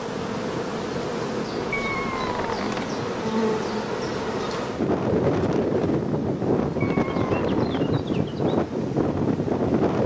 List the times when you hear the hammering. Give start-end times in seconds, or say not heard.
not heard.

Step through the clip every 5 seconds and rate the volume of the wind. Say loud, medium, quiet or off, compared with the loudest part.
medium, loud.